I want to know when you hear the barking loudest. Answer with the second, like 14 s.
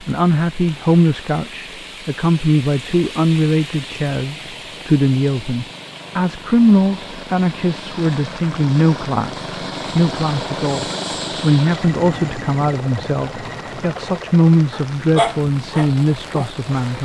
15 s.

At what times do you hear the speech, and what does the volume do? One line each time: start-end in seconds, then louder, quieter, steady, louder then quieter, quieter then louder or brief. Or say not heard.
0.1-17.0 steady.